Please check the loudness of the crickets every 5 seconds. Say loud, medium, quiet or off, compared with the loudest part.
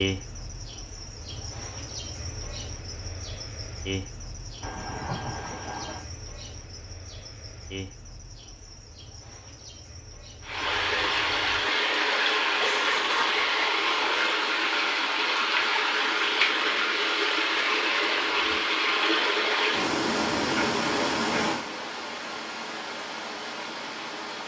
loud, medium, medium, off, off.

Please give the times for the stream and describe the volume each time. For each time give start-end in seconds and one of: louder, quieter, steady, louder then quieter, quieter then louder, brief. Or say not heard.
10.4-24.4 quieter.